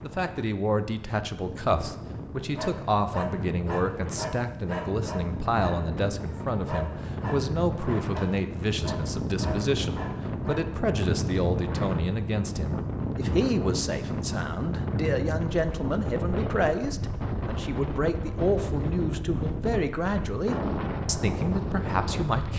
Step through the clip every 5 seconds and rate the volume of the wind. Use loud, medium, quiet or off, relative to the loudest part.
medium, loud, loud, loud, loud.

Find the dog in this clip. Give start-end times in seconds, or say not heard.
2.5-10.6.